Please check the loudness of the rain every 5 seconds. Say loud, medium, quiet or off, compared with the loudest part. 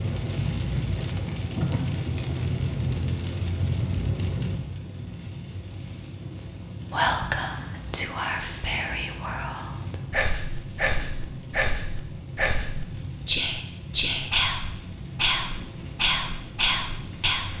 loud, medium, medium, medium.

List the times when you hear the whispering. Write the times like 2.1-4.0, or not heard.
6.9-17.5.